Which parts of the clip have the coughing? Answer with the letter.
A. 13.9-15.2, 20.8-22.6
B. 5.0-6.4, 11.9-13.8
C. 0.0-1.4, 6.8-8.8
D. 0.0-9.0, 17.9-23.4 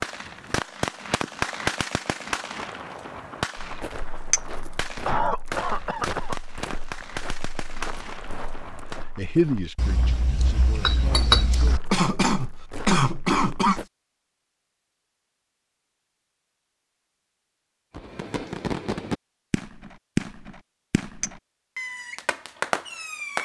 B.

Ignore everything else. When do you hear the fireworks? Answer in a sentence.
The fireworks can be heard from 0.0 to 9.0 s and from 17.9 to 23.4 s.